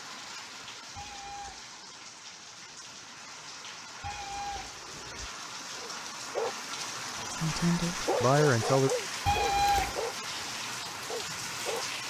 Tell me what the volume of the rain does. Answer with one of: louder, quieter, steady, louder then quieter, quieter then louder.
louder.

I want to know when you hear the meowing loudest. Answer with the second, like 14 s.
10 s.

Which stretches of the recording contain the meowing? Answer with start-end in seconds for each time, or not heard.
0.9-1.6, 4.0-5.3, 9.2-10.1.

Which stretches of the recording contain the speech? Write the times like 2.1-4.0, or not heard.
7.4-8.9.